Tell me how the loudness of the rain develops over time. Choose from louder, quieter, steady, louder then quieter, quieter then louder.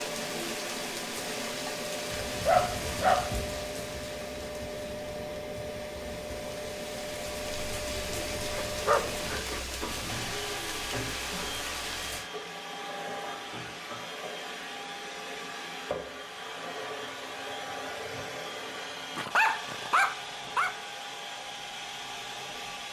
quieter then louder.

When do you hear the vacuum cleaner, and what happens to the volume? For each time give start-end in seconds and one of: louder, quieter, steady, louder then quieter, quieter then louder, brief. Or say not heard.
0.0-22.8 steady.